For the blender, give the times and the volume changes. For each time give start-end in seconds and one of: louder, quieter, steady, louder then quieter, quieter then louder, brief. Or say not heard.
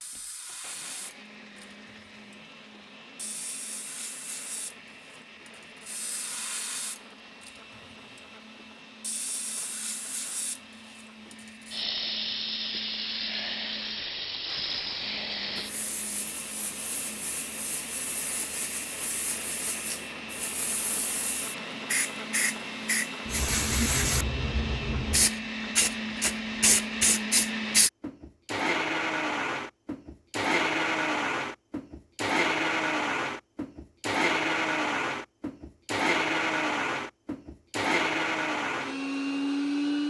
0.0-40.0 louder.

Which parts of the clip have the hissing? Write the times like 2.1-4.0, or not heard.
0.0-27.9.